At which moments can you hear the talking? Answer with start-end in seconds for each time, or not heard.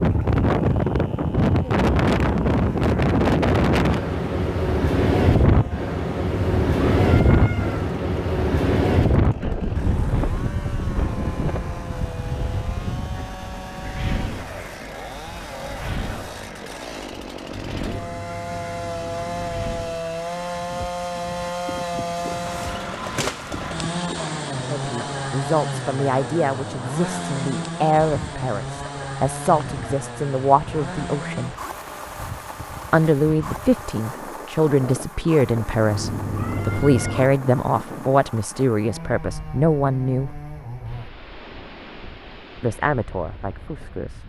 24.7-31.6, 32.9-40.3, 42.6-44.2.